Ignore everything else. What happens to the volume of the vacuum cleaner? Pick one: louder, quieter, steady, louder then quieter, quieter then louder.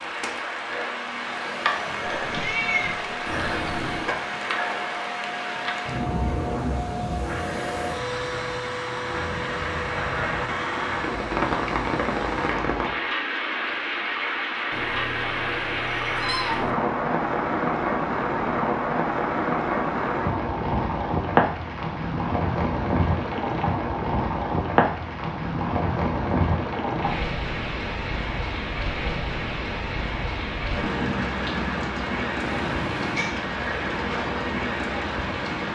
louder then quieter.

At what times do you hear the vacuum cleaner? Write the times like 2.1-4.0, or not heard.
0.0-12.6.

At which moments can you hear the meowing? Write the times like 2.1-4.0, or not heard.
2.2-4.1, 14.7-16.8, 32.4-33.4.